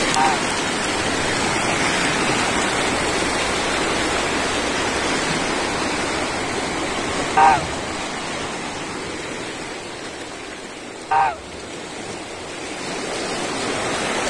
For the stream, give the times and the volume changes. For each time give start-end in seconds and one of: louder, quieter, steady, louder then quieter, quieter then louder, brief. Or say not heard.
0.0-14.2 quieter.